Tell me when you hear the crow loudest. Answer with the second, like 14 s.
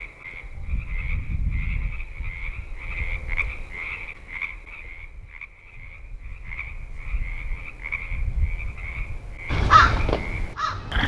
10 s.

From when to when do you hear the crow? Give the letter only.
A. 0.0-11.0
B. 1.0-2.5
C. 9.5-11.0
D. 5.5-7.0
C.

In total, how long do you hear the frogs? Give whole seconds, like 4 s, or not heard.
11 s.